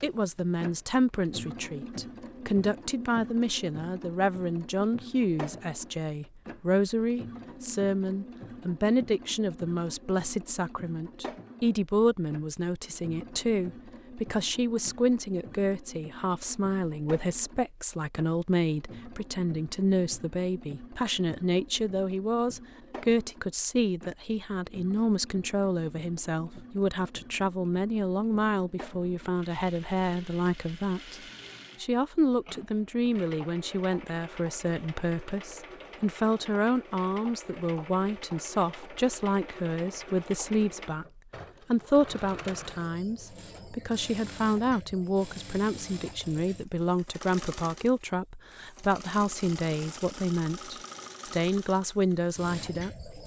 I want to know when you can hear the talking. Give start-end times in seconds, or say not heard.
0.0-31.2, 31.8-53.2.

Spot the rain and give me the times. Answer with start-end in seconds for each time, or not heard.
not heard.